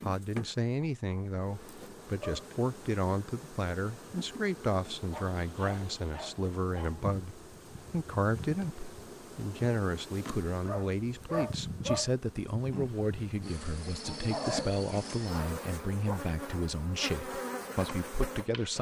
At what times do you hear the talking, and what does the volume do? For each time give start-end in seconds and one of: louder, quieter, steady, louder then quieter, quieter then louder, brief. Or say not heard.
0.0-18.7 steady.